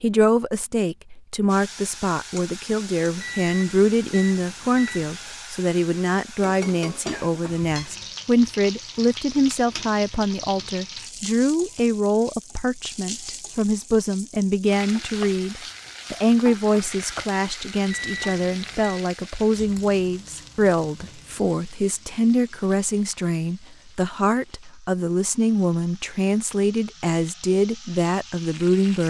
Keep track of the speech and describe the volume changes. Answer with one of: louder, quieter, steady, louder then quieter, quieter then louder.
steady.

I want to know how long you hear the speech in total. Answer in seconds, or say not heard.
29 s.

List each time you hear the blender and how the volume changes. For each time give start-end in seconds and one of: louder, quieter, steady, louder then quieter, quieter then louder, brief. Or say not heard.
not heard.